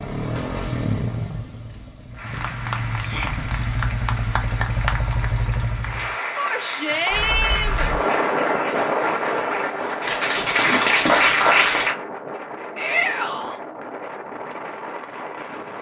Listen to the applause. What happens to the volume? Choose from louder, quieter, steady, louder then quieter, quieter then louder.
louder.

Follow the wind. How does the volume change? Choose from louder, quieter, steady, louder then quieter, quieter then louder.
quieter.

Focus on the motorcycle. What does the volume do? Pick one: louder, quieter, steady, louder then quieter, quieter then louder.
quieter then louder.